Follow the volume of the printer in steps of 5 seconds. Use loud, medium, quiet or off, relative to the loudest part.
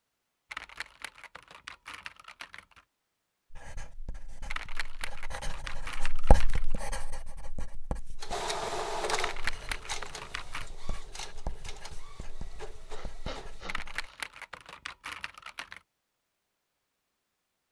off, loud, quiet, off.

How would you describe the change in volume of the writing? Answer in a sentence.
The loudness of the writing goes up, then down.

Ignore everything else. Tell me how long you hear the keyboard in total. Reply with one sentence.
The keyboard can be heard for 8 seconds in total.